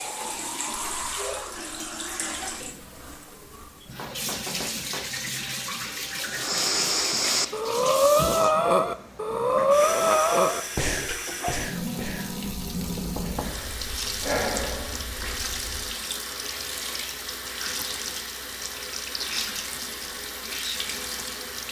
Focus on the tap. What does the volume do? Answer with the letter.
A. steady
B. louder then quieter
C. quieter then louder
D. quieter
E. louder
A.